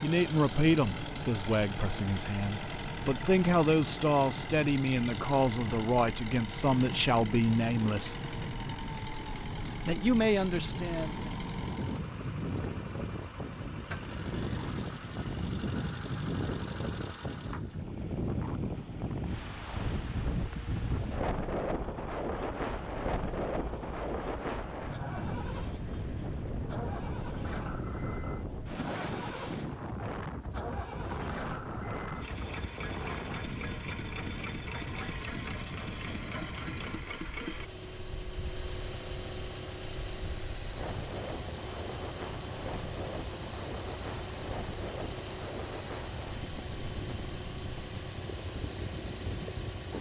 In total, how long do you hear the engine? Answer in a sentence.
The engine can be heard for 50 seconds in total.